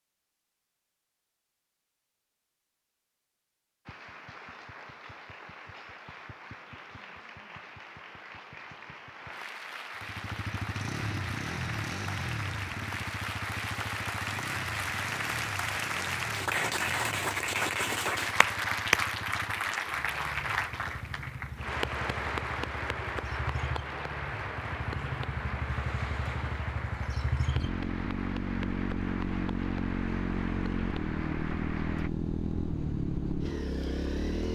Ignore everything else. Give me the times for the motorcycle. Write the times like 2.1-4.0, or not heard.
10.0-34.4.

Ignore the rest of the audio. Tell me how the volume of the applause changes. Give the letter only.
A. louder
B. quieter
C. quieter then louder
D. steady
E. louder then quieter
E.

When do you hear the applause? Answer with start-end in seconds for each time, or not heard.
3.9-32.1.